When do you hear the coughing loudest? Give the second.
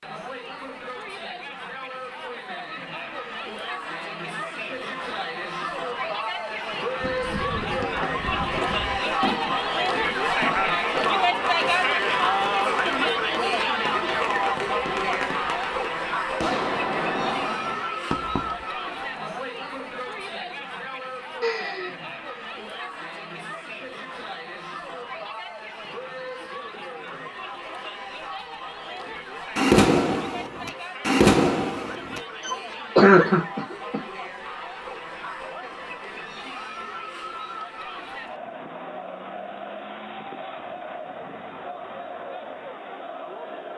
33 s.